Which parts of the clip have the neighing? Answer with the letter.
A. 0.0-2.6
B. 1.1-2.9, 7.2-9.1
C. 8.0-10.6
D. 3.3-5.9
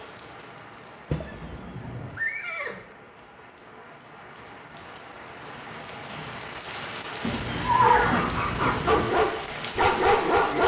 B.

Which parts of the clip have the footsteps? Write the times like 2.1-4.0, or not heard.
not heard.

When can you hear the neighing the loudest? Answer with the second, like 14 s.
8 s.